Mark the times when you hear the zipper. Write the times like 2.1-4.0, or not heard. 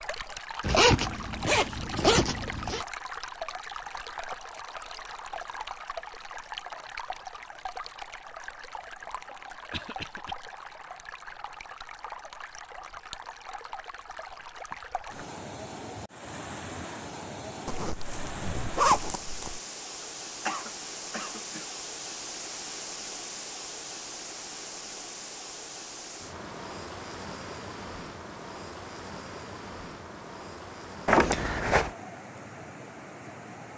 0.6-2.9, 17.6-19.6, 31.1-31.9.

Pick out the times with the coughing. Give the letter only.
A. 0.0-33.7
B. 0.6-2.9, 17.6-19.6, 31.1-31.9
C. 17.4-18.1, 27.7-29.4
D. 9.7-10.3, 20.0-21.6
D.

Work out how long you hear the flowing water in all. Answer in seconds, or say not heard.
34 s.